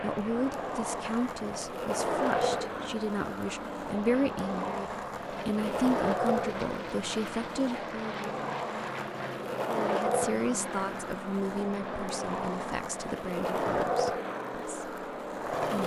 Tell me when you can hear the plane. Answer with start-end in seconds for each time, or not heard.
0.0-15.6.